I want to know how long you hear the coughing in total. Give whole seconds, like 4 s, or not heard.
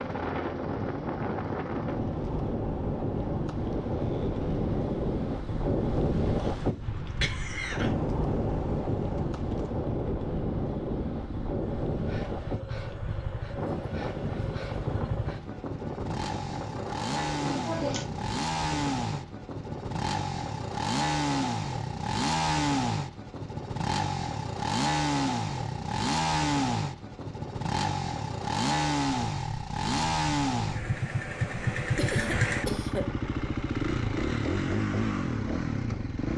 3 s.